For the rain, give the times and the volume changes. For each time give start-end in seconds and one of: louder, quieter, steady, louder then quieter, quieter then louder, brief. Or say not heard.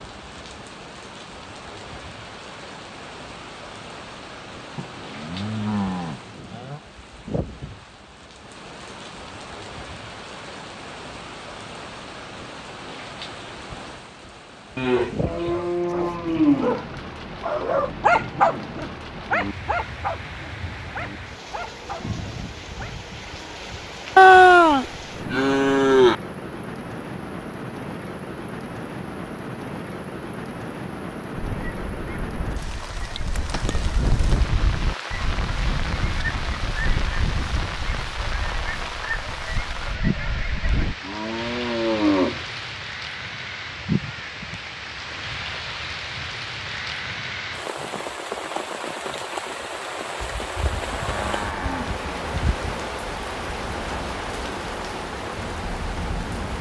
0.0-56.5 louder.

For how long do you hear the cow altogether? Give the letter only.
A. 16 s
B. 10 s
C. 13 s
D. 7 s
B.